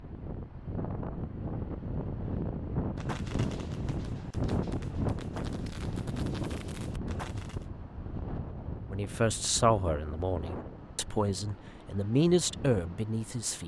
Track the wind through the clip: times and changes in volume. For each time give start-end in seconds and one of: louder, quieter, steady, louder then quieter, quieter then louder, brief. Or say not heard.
0.0-13.6 quieter.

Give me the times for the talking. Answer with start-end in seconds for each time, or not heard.
8.9-13.6.